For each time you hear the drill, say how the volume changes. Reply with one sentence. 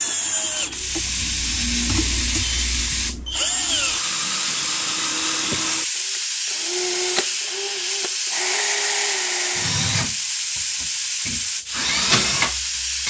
You can hear the drill from 0.0 to 13.0 s, getting louder.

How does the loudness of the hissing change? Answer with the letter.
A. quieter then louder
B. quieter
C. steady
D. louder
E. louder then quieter
C.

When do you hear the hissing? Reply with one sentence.
You can hear the hissing from 0.0 to 13.0 s.